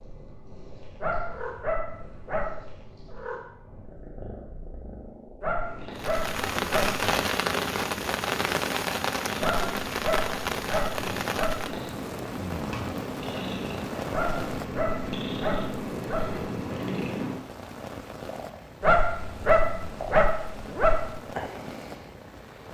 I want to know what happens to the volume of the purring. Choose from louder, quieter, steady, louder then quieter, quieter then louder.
louder then quieter.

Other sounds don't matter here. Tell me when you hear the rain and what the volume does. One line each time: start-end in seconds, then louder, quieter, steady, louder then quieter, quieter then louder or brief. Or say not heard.
6.0-22.6 quieter.